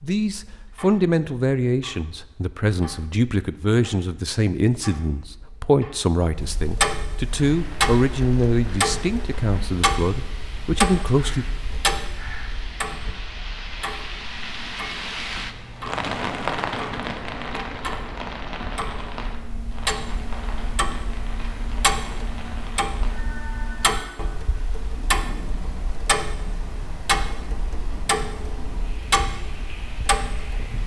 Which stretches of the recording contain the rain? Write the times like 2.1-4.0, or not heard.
7.3-30.8.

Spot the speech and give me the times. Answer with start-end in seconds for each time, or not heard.
0.0-11.4.